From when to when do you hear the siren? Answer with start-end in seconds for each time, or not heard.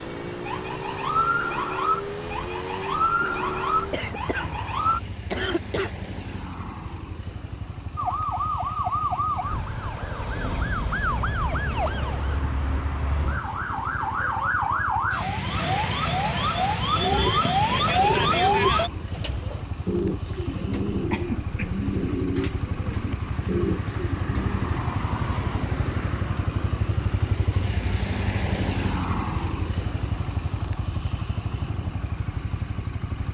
0.0-5.0, 8.0-18.9.